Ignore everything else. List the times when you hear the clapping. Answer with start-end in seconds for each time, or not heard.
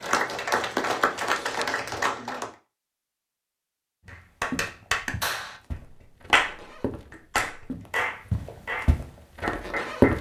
0.0-2.5, 4.0-10.1.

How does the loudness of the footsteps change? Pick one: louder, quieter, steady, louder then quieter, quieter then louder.
quieter then louder.